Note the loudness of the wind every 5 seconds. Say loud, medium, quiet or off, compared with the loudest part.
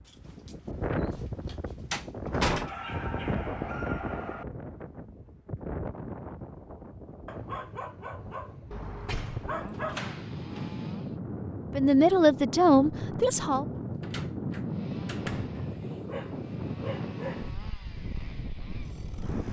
loud, medium, loud, loud.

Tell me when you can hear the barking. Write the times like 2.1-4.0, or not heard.
2.5-4.5, 7.2-10.2, 15.6-17.5.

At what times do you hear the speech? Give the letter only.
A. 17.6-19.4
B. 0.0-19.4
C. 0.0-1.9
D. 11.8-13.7
D.